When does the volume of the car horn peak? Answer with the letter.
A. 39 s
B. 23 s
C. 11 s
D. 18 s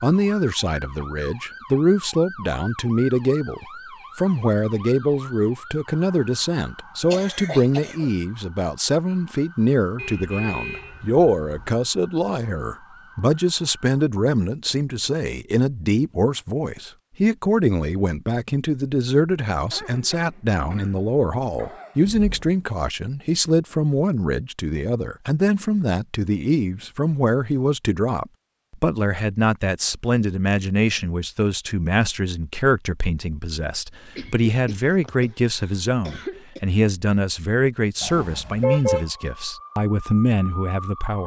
A.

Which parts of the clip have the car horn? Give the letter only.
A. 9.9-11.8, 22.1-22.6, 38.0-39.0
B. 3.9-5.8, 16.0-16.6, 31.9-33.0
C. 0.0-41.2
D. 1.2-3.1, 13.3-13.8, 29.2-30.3
A.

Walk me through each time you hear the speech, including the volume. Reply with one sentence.
The speech can be heard from 0.0 to 41.2 s, at a steady volume.